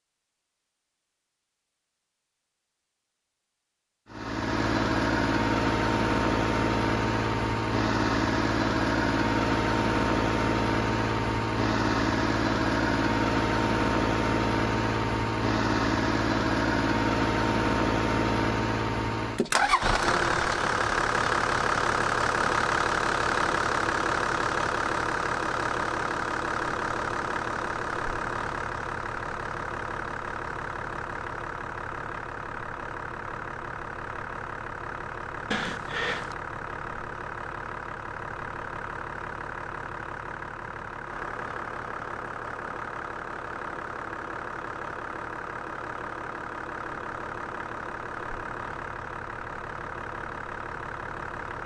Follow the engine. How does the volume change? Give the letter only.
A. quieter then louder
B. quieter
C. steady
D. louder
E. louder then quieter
B.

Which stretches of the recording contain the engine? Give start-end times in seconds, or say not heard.
4.1-51.6.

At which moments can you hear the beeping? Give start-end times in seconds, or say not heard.
35.5-36.4.